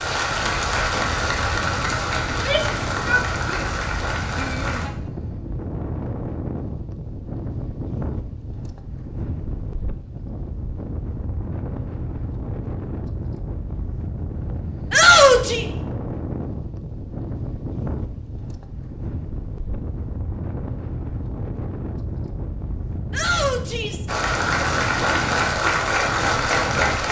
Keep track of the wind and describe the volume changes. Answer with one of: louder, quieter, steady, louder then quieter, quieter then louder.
steady.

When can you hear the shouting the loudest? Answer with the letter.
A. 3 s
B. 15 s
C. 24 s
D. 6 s
B.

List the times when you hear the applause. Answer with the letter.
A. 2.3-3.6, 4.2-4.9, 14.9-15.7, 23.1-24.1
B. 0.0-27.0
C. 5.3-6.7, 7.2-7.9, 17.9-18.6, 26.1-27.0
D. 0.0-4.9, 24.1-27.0
D.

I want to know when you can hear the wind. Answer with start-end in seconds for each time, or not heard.
0.0-27.0.